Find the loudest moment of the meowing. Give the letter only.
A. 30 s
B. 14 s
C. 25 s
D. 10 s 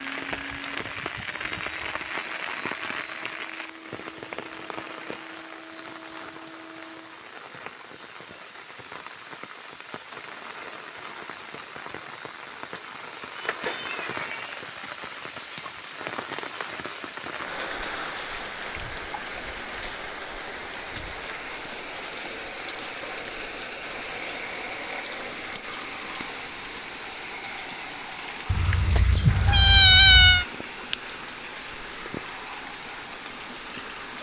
A.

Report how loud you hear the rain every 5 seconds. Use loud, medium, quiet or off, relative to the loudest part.
loud, medium, loud, loud, loud, loud, loud.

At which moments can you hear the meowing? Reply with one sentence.
The meowing can be heard from 13.3 to 14.6 s and from 28.5 to 30.4 s.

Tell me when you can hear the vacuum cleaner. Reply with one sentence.
You can hear the vacuum cleaner from 0.0 to 7.2 s.